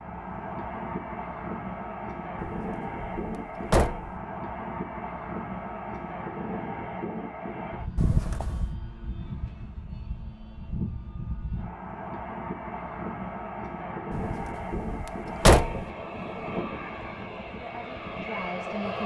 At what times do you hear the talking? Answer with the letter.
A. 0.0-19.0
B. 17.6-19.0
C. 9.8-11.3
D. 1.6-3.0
B.